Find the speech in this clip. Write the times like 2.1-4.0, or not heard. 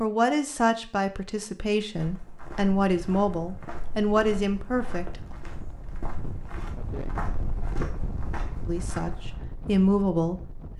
0.0-5.2, 8.7-10.7.